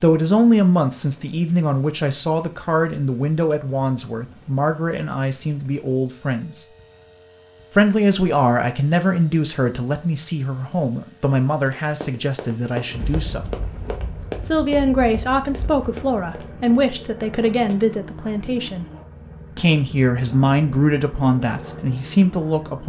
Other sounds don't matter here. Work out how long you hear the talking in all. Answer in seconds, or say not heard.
20 s.